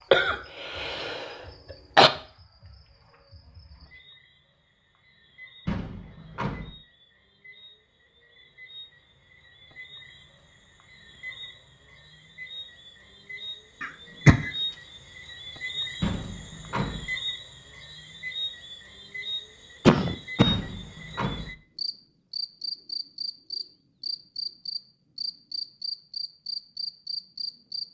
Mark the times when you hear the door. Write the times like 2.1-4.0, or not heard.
5.7-6.7, 16.0-17.1, 20.4-21.5.